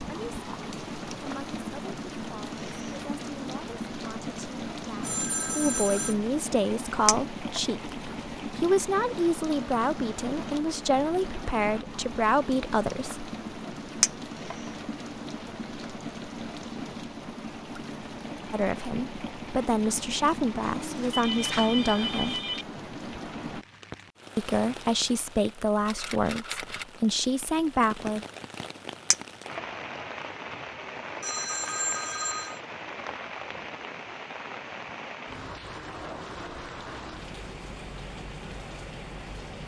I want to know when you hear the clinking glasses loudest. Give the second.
14 s.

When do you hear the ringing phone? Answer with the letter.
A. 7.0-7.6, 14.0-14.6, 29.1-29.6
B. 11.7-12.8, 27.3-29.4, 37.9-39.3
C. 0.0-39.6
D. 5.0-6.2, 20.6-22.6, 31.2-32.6
D.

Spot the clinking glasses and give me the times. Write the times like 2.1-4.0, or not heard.
7.0-7.6, 14.0-14.6, 29.1-29.6.